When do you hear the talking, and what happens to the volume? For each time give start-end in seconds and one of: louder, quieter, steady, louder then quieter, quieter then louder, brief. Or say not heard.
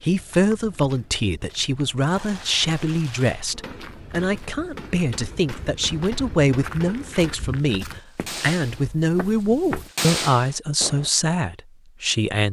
0.0-12.4 steady.